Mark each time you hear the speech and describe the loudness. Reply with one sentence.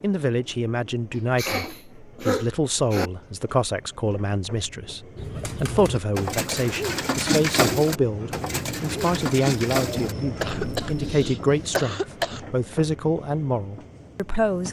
The speech can be heard from 0.0 to 14.6 s, at a steady volume.